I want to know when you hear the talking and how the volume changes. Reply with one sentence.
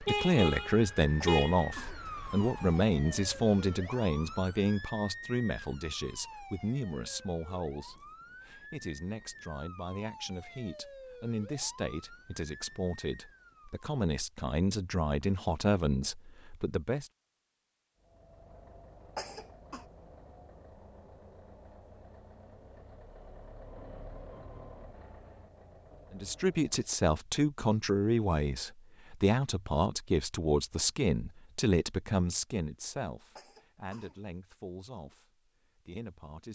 The talking can be heard from 0.0 to 17.1 s, getting quieter then louder; and from 26.1 to 36.4 s, getting quieter.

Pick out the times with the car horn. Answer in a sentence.
The car horn can be heard from 0.1 to 1.6 s.